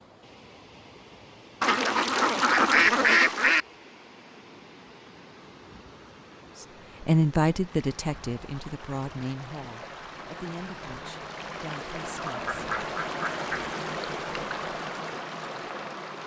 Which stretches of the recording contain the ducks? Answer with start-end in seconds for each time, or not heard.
1.6-3.6, 12.1-13.7.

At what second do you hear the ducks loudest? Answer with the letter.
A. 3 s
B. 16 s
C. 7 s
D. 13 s
A.